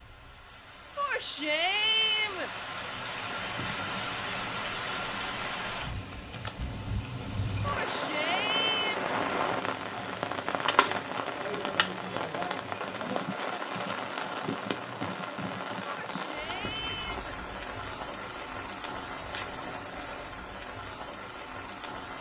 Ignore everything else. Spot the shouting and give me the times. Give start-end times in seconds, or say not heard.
0.9-2.5, 7.6-9.2, 15.8-17.2.